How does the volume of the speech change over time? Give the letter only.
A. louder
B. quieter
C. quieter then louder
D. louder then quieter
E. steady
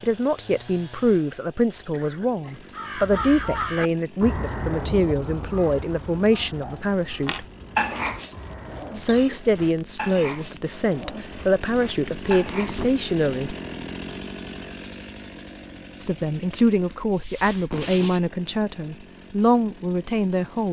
E.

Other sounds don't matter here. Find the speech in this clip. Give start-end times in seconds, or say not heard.
0.0-7.5, 8.9-13.6, 16.0-20.6.